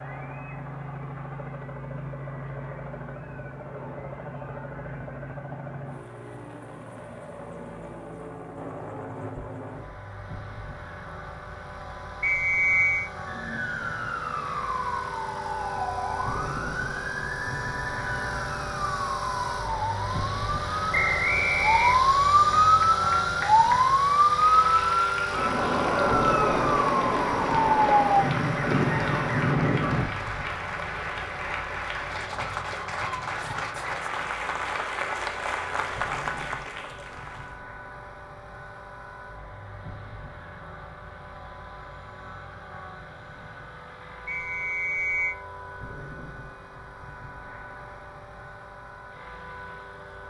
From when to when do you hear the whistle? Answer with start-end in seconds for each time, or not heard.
12.2-13.1, 20.9-22.0, 44.2-45.4.